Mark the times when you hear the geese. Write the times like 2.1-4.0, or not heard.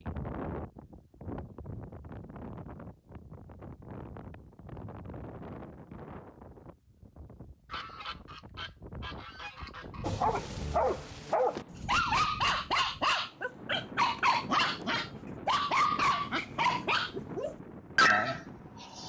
7.7-10.1.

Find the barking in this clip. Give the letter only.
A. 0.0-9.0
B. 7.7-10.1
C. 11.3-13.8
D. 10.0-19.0
D.